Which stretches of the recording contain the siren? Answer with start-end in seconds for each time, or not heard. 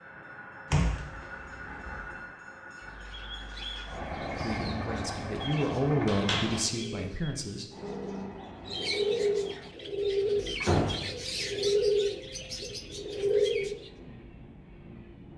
not heard.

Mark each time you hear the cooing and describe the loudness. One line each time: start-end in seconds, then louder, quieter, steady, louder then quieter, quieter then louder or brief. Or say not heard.
2.8-13.9 louder.